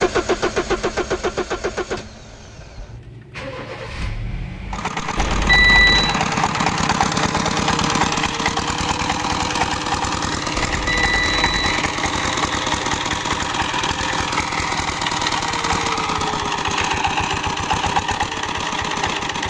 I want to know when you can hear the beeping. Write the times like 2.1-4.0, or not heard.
5.2-6.2, 10.7-11.8.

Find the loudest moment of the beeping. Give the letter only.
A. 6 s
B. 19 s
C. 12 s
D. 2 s
A.